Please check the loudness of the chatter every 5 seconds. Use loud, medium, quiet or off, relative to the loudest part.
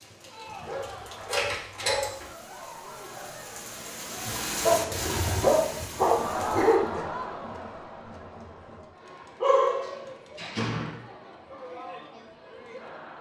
medium, loud, medium.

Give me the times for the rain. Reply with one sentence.
The rain can be heard from 0.0 to 6.8 s.